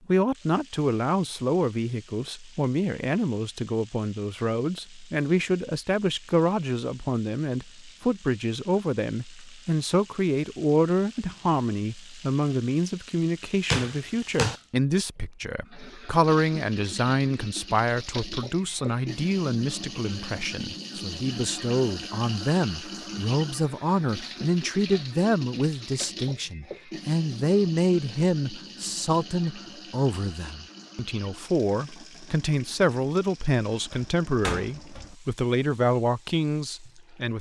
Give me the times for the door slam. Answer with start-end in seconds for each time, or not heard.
13.7-14.6, 33.9-35.1.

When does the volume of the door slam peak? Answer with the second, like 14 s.
14 s.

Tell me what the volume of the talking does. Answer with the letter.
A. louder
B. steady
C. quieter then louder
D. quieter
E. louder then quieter
B.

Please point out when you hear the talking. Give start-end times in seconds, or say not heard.
0.1-37.3.